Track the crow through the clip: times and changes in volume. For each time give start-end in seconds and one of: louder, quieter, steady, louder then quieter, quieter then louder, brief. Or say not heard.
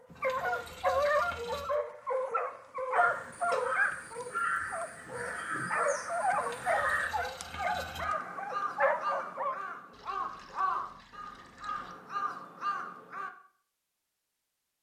3.0-13.3 steady.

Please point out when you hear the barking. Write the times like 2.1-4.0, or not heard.
0.2-9.6.